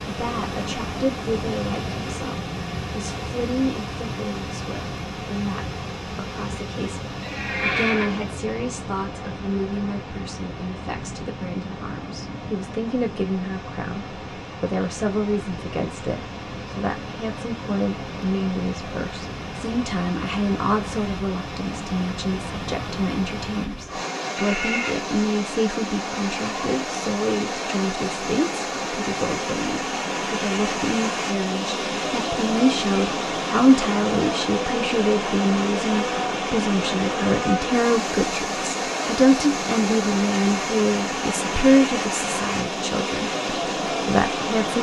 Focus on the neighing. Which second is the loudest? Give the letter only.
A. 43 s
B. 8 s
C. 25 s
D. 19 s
B.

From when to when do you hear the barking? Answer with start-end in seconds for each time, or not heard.
not heard.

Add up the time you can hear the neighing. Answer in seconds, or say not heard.
2 s.